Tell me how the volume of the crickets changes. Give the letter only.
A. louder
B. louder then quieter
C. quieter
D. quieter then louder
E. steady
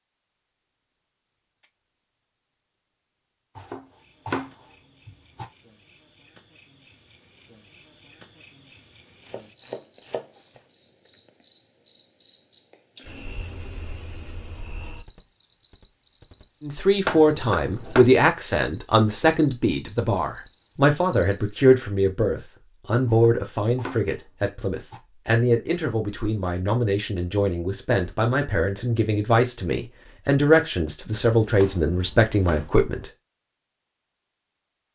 A.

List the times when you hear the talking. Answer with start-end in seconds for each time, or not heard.
16.6-33.1.